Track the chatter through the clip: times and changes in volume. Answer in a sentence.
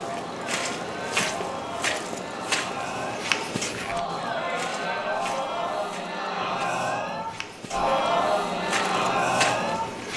The chatter can be heard from 0.0 to 10.1 s, getting louder.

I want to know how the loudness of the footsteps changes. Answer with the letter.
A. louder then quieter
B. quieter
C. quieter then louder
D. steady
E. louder
C.